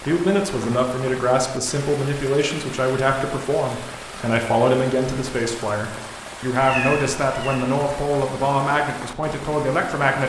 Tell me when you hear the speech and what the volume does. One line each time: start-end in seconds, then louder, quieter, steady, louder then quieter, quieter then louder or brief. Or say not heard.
0.1-10.2 steady.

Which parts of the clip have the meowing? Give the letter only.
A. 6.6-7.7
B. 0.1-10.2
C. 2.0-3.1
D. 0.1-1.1
A.